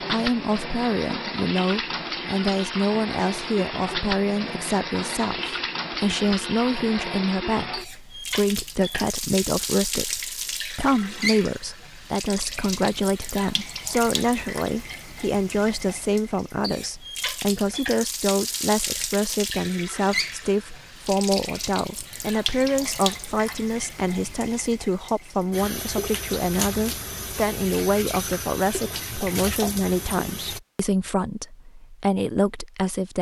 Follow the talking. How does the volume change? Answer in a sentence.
The loudness of the talking stays about the same.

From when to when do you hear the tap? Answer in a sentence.
You can hear the tap from 0.0 to 30.6 s.